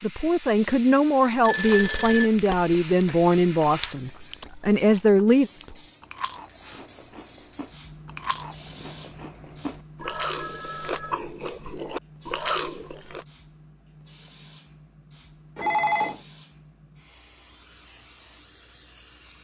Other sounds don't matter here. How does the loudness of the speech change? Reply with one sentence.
The loudness of the speech stays about the same.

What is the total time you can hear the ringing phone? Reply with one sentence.
The ringing phone can be heard for 3 seconds in total.